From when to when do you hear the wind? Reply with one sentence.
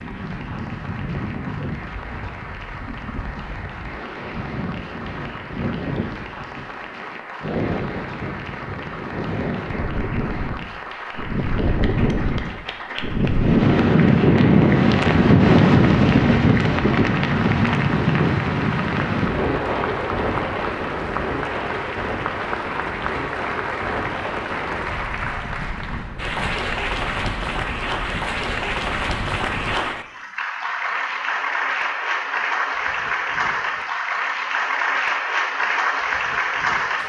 You can hear the wind from 0.0 to 29.8 s.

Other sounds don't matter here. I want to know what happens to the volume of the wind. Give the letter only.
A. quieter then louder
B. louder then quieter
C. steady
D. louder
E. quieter
B.